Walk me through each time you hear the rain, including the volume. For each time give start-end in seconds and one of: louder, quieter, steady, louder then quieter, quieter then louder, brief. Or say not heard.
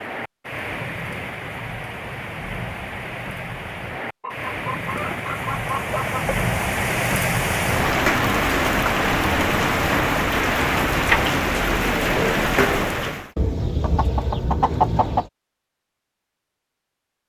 0.0-13.3 louder.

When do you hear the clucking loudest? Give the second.
15 s.